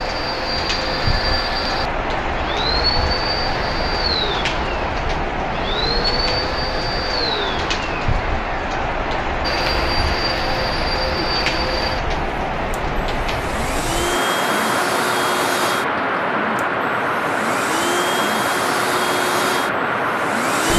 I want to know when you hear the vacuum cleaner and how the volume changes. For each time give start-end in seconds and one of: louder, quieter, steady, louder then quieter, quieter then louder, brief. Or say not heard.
0.0-20.7 steady.